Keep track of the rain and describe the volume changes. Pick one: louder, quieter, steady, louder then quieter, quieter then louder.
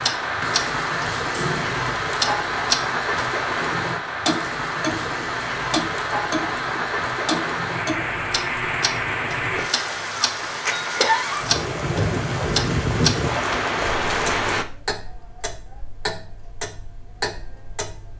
steady.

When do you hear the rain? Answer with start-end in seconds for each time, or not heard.
0.0-14.7.